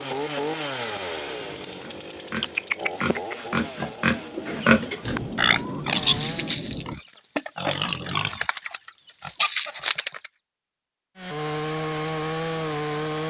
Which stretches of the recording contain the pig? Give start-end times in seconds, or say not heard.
1.8-10.3.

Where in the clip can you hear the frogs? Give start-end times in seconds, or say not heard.
not heard.